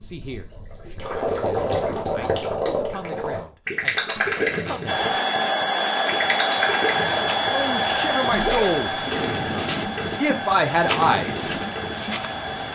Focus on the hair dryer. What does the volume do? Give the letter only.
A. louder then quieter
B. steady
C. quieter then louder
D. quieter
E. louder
D.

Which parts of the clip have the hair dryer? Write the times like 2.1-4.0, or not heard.
4.8-12.6.